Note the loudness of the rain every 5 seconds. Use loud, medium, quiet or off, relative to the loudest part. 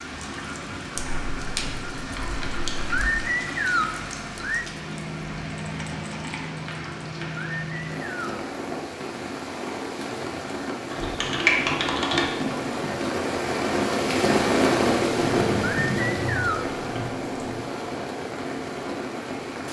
medium, medium, loud, loud.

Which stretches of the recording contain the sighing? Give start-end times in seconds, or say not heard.
2.9-4.7, 7.5-8.3, 15.6-16.7.